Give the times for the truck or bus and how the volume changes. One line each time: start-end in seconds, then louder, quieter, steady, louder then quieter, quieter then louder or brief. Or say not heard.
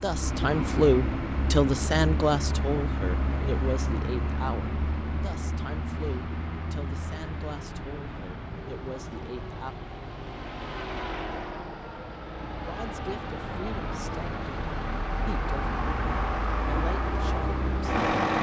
0.0-18.3 quieter then louder.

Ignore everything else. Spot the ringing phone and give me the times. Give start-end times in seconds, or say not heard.
not heard.